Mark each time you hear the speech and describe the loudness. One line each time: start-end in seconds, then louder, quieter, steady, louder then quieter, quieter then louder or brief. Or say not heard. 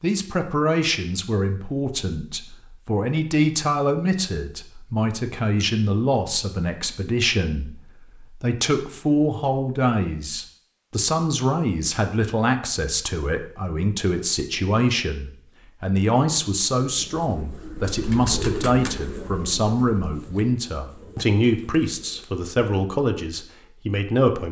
0.0-24.4 steady.